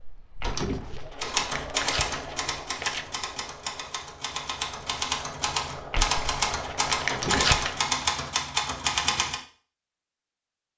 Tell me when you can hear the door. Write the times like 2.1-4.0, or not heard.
0.4-1.1, 7.1-7.7.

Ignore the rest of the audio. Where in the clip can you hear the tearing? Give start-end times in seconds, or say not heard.
0.4-3.0, 5.9-7.8.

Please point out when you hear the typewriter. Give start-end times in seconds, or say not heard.
1.2-9.4.